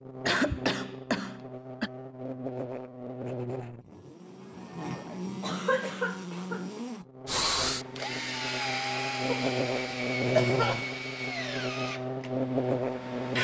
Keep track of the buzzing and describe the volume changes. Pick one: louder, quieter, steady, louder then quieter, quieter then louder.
louder.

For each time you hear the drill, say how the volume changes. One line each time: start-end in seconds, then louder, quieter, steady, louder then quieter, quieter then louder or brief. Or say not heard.
7.2-13.4 quieter.